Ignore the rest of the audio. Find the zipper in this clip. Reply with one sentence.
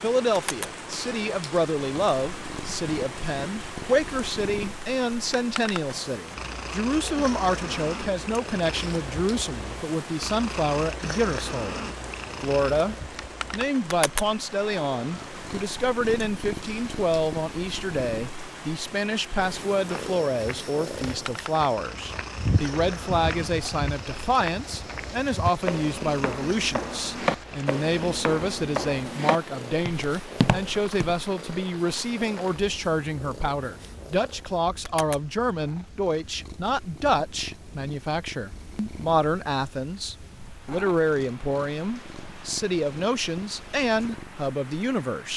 The zipper can't be heard in this clip.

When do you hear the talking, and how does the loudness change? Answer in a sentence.
You can hear the talking from 0.0 to 45.3 s, at a steady volume.